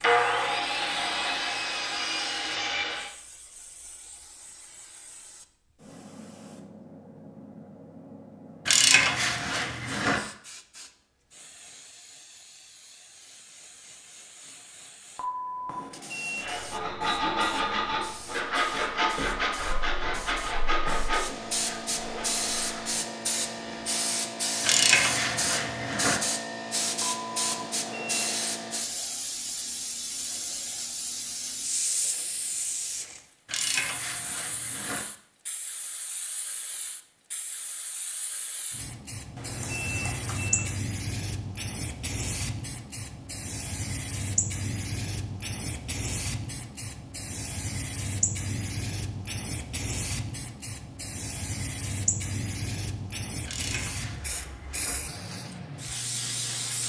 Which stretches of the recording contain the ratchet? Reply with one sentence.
You can hear the ratchet from 8.7 to 10.2 s, from 24.6 to 26.2 s, from 33.5 to 35.0 s and from 53.5 to 55.0 s.